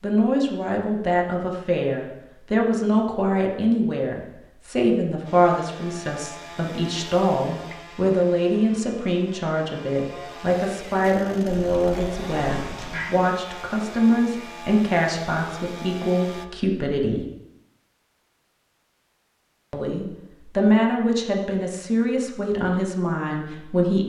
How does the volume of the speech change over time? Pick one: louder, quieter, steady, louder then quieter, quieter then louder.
steady.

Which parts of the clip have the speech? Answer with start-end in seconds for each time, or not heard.
0.0-17.2, 19.7-24.0.